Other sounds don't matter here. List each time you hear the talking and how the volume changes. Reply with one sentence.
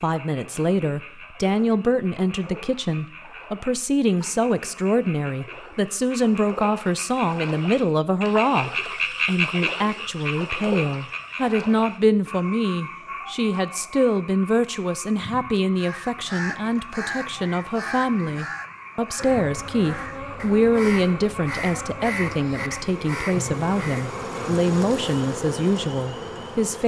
The talking can be heard from 0.0 to 26.8 s, at a steady volume.